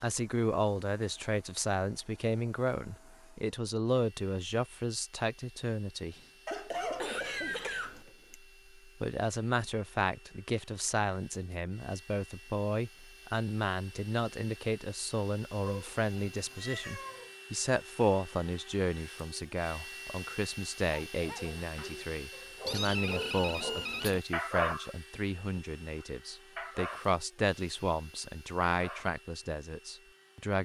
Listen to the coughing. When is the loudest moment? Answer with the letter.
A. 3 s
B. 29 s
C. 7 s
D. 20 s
C.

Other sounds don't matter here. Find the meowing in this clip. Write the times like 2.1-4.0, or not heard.
6.8-8.1, 15.7-17.3, 22.6-24.2.